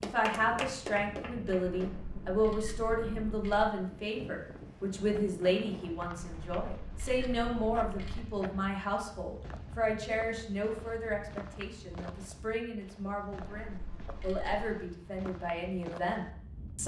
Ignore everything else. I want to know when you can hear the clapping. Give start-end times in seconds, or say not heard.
0.0-2.0.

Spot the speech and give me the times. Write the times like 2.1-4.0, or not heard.
0.0-16.8.